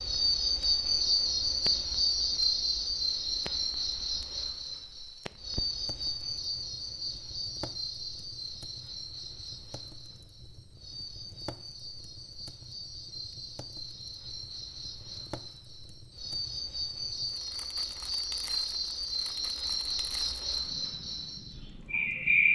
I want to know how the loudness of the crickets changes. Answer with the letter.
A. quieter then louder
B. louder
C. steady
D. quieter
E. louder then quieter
A.